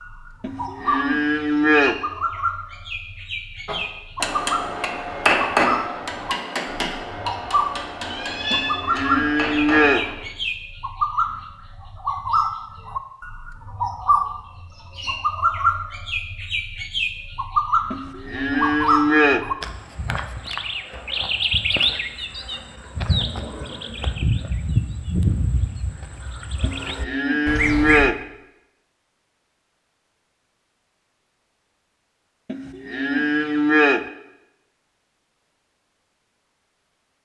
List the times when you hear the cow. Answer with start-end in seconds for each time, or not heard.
0.4-1.9, 8.5-10.1, 17.9-19.4, 26.6-28.1, 32.5-34.0.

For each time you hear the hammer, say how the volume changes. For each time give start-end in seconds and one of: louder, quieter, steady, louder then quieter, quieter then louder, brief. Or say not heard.
3.6-10.2 louder then quieter.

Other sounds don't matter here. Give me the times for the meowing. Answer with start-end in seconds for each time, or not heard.
8.1-8.8.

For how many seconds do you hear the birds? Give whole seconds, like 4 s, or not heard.
28 s.